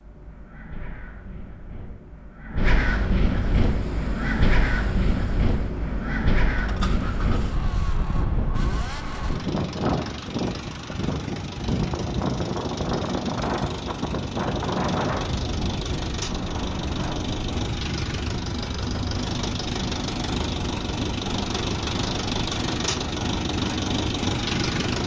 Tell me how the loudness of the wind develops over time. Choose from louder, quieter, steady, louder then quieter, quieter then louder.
quieter.